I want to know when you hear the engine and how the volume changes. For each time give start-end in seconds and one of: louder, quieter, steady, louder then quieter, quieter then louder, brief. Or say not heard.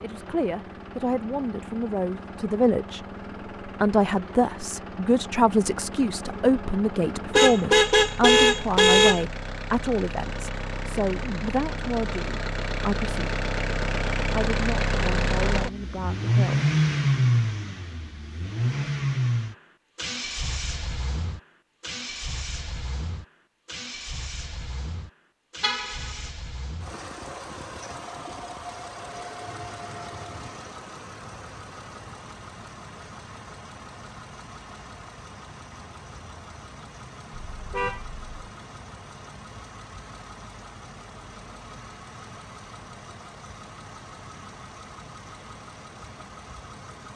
0.0-47.1 louder then quieter.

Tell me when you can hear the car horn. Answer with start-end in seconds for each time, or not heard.
7.3-9.2, 25.6-26.1, 37.5-38.2.